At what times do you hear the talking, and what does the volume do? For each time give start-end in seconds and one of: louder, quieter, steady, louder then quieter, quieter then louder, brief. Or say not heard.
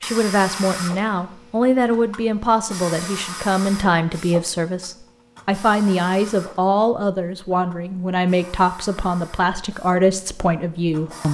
0.0-11.2 steady.